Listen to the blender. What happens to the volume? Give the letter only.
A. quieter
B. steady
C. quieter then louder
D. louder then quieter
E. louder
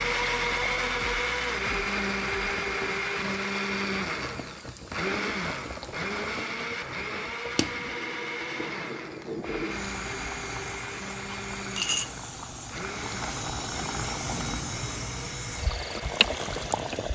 A.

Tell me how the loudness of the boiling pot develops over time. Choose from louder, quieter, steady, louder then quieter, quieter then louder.
louder.